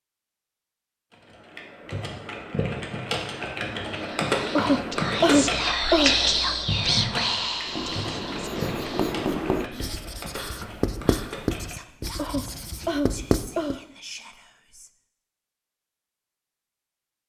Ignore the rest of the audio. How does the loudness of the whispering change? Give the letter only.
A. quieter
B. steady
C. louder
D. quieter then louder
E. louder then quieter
A.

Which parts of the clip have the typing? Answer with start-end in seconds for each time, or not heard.
1.1-12.7.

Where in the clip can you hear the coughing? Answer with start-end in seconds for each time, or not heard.
4.5-6.2, 12.2-13.8.